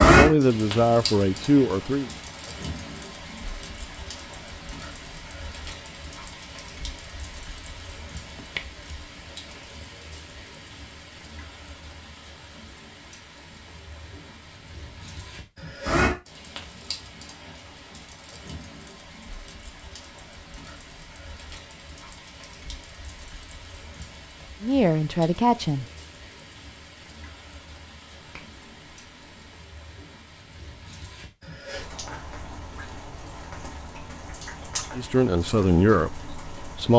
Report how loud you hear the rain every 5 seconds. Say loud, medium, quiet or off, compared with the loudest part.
loud, quiet, quiet, medium, quiet, quiet, quiet, quiet.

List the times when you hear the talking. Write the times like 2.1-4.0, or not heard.
0.0-2.1, 24.6-25.9, 35.0-36.9.